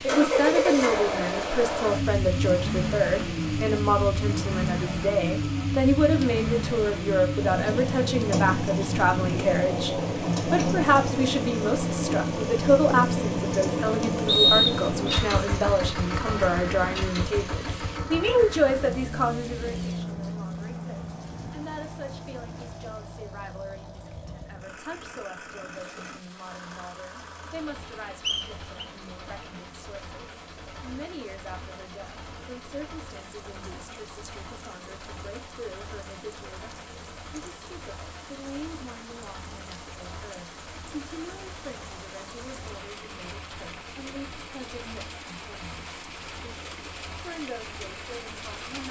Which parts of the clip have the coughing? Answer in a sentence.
You can't hear the coughing here.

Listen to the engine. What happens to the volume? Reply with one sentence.
The loudness of the engine goes down.